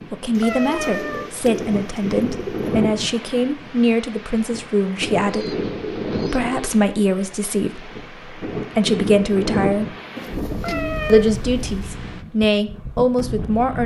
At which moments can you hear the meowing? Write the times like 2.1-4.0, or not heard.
0.4-1.3, 10.6-11.3.